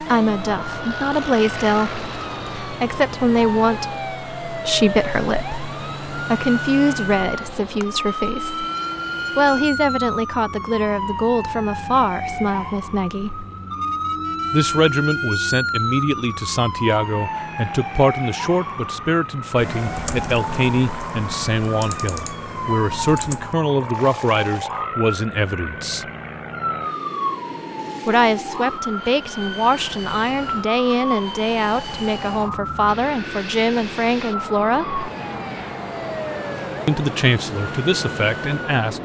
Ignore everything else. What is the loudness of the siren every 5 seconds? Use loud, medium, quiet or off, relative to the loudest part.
loud, loud, loud, loud, loud, loud, loud, medium.